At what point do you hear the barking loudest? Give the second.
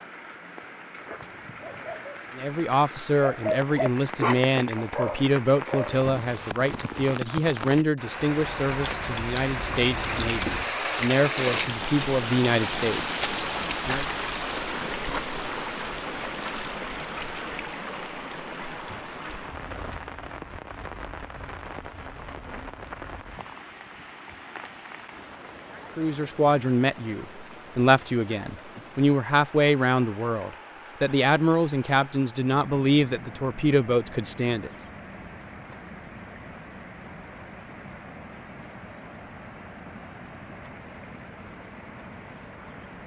4 s.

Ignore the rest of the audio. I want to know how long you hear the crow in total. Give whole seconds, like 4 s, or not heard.
not heard.